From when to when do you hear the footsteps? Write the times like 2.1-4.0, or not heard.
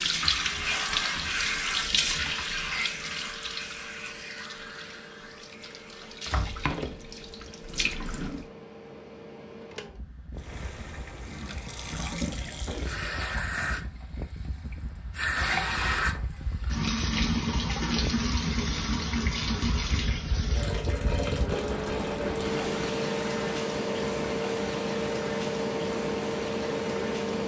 not heard.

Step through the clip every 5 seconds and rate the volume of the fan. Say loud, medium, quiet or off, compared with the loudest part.
quiet, quiet, quiet, medium, loud, loud.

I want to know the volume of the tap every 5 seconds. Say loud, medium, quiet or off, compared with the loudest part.
loud, medium, medium, loud, medium, medium.